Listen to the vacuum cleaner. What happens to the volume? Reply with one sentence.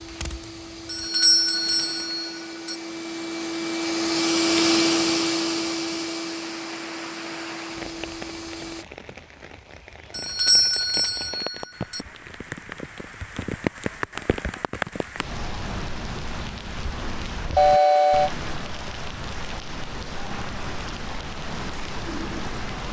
The volume of the vacuum cleaner goes up, then down.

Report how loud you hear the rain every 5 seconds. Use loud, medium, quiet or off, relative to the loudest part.
off, medium, loud, loud, loud.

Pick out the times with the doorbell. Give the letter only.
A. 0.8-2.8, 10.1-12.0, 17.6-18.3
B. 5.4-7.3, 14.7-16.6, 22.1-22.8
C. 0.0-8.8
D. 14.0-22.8
A.